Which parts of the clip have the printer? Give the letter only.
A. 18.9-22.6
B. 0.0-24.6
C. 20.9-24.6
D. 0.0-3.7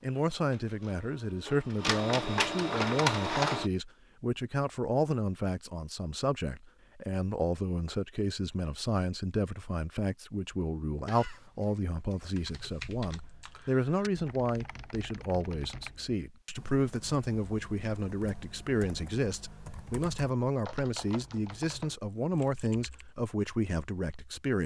D.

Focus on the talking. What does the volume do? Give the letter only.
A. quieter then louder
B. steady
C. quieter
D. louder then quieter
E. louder
B.